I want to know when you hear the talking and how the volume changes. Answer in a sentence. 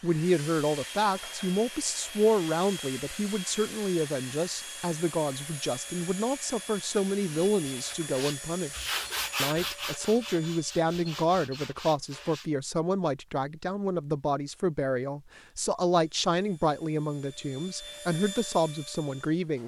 You can hear the talking from 0.0 to 19.6 s, at a steady volume.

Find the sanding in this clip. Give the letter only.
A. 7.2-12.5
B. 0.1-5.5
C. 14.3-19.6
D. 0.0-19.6
A.